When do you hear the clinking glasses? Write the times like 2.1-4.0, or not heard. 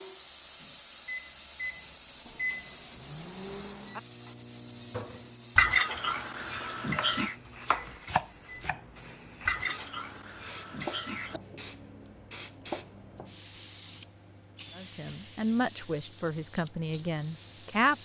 5.5-7.3, 9.4-11.4.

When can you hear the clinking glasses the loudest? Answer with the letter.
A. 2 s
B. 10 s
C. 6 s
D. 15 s
C.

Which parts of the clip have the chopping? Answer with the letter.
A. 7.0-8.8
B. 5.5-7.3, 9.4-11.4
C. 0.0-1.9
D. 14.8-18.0
A.